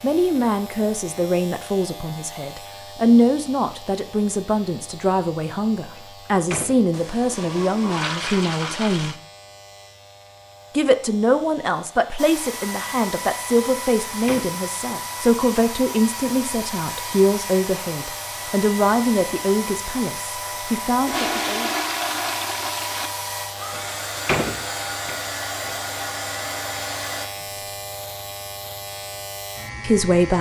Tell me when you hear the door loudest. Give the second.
24 s.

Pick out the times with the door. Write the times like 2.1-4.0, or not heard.
6.0-6.8, 13.7-14.5, 23.7-25.8.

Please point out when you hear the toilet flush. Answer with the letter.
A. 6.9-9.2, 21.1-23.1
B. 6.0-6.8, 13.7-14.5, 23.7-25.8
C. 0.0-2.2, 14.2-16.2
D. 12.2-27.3
A.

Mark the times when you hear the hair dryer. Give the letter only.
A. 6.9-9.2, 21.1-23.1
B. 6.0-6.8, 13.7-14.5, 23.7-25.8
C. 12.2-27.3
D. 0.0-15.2
C.